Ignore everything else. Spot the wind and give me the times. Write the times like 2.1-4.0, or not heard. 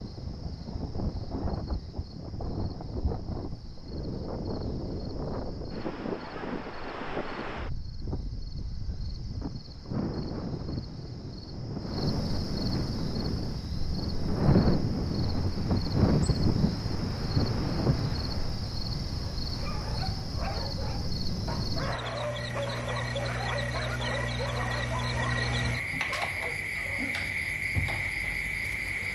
0.0-18.6.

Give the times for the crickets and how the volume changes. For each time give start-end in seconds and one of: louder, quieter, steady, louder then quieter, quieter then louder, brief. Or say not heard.
0.0-29.1 louder.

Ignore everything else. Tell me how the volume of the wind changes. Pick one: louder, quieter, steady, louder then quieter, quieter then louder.
louder.